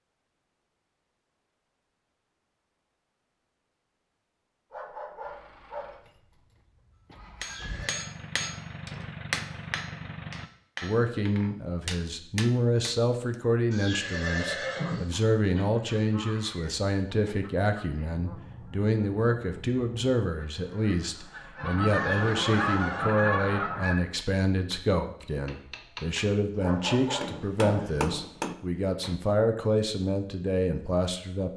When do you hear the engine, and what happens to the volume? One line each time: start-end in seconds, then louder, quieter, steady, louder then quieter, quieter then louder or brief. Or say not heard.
5.2-10.5 louder.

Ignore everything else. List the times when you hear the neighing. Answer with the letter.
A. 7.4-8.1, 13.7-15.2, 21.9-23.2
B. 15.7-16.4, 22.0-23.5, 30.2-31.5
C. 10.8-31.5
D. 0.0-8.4
A.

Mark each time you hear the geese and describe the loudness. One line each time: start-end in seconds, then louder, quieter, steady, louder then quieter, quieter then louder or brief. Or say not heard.
15.5-23.9 louder.